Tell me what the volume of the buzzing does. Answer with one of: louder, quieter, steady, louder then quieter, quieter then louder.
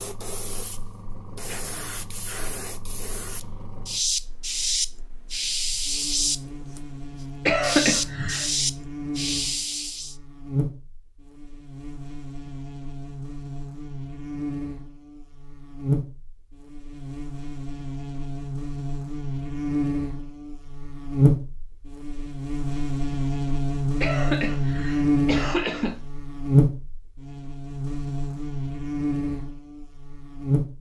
louder.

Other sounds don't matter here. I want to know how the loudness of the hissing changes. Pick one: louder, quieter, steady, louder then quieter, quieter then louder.
louder.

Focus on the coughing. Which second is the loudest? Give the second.
8 s.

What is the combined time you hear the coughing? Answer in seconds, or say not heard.
3 s.